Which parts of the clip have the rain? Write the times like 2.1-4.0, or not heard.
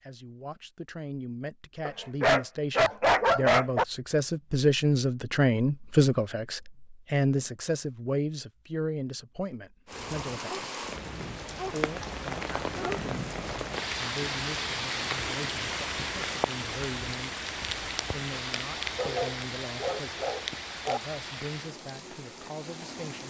9.8-23.2.